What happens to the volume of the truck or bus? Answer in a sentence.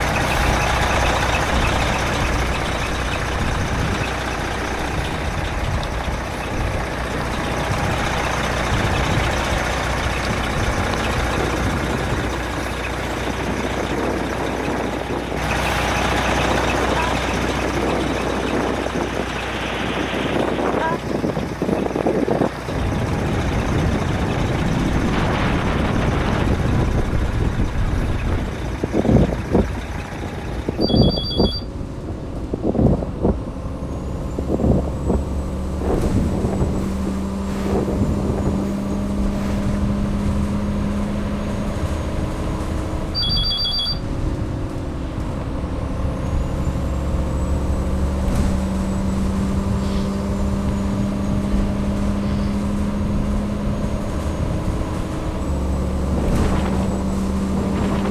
The volume of the truck or bus goes down, then up.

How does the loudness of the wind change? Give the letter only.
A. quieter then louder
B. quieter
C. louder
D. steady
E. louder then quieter
E.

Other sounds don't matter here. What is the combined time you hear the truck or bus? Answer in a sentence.
The truck or bus can be heard for 58 seconds in total.